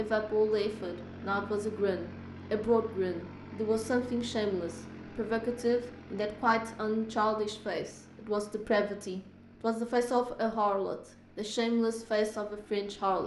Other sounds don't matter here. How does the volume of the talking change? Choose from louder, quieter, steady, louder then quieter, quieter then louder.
steady.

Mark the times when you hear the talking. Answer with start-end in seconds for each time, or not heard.
0.0-13.2.